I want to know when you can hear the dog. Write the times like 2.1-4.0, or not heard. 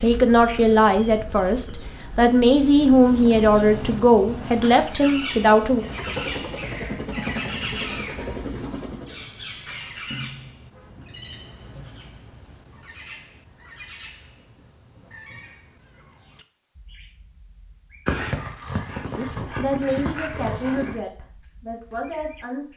18.1-21.0.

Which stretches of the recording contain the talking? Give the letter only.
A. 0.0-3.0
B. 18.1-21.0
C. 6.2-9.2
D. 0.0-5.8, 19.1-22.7
D.